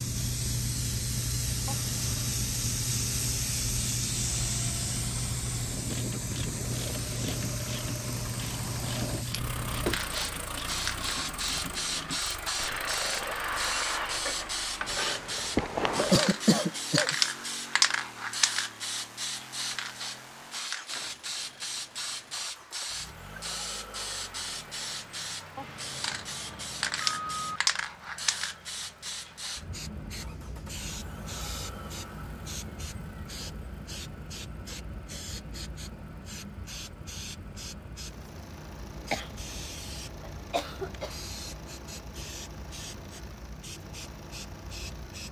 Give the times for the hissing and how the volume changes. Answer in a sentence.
You can hear the hissing from 0.0 to 45.2 s, getting quieter.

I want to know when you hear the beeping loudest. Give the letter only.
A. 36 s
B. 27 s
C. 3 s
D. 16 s
B.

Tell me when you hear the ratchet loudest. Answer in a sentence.
The volume of the ratchet peaks at 16 seconds.